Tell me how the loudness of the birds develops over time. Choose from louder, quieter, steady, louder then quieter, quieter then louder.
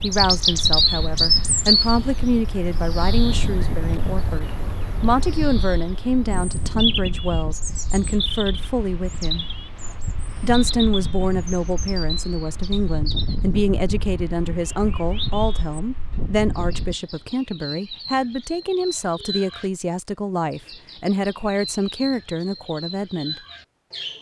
quieter.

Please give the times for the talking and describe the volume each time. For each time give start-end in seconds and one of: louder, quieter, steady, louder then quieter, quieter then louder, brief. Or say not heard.
0.0-9.4 steady
10.4-23.4 steady.